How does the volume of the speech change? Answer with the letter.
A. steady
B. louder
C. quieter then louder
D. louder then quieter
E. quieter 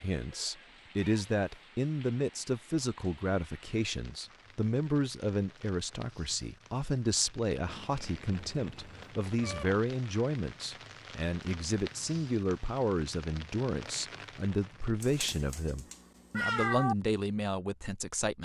A.